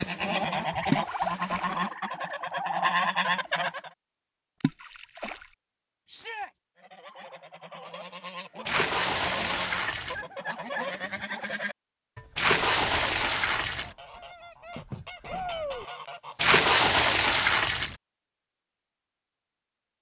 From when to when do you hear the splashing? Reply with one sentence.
The splashing can be heard from 0.8 to 1.7 s, from 4.6 to 5.5 s, from 8.7 to 10.2 s, from 12.3 to 13.9 s and from 16.4 to 17.9 s.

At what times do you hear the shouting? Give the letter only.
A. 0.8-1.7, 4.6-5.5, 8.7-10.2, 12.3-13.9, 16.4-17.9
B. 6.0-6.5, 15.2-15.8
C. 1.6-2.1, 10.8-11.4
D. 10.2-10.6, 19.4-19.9
B.